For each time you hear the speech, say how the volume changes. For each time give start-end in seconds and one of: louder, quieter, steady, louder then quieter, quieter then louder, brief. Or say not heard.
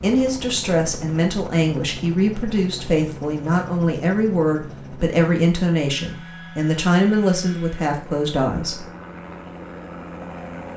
0.0-8.8 steady.